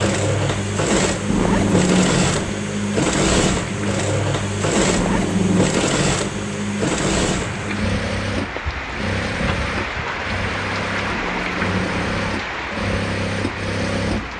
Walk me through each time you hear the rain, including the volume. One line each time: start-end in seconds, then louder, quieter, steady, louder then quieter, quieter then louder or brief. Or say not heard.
0.1-14.3 louder.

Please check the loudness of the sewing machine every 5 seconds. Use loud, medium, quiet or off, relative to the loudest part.
loud, loud, medium.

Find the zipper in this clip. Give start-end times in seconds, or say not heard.
1.2-2.5, 4.8-5.8, 11.1-11.9.